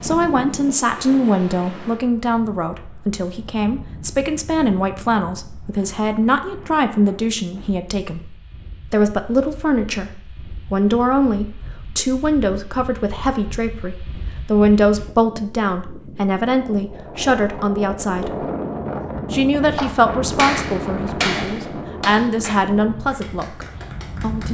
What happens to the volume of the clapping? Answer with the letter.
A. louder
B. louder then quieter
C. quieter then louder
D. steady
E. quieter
E.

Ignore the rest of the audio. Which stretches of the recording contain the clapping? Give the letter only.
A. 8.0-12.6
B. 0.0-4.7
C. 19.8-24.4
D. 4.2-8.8
C.